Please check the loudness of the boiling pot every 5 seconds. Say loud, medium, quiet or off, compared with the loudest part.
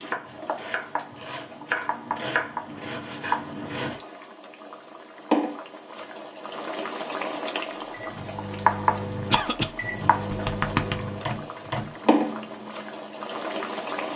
medium, loud, loud.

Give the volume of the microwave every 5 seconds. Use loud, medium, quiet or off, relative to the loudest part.
off, loud, loud.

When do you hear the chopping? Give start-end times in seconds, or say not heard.
0.0-4.0.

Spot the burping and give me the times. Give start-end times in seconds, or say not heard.
10.3-11.0.